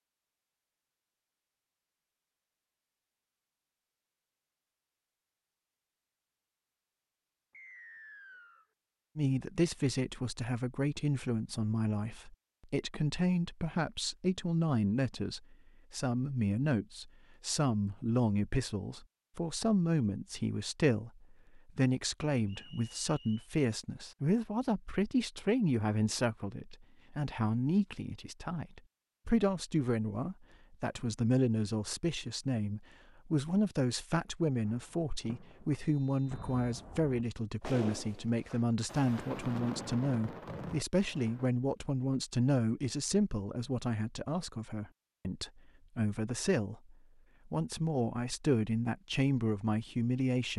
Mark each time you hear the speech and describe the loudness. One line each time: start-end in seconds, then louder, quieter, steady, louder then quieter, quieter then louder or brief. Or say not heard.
9.2-50.5 steady.